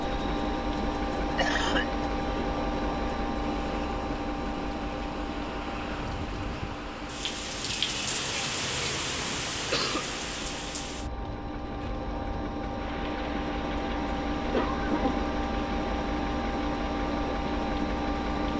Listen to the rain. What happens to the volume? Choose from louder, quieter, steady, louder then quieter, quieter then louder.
louder then quieter.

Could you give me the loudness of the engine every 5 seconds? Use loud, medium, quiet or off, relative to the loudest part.
loud, medium, loud, loud.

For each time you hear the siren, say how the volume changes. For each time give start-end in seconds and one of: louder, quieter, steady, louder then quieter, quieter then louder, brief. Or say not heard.
not heard.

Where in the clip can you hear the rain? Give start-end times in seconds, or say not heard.
0.0-18.5.